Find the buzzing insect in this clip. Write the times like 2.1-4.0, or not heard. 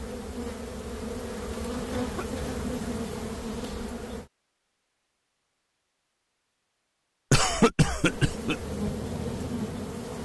0.0-4.3, 8.0-10.2.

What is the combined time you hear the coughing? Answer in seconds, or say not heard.
2 s.